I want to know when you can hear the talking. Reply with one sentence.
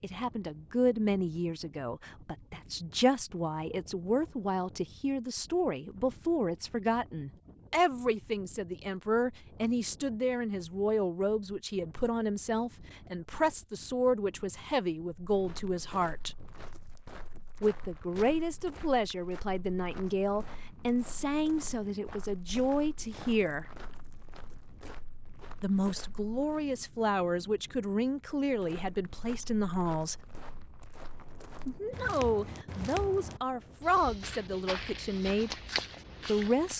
You can hear the talking from 0.0 to 16.4 s, from 17.6 to 23.6 s, from 25.6 to 30.2 s, from 31.6 to 35.5 s and from 36.2 to 36.7 s.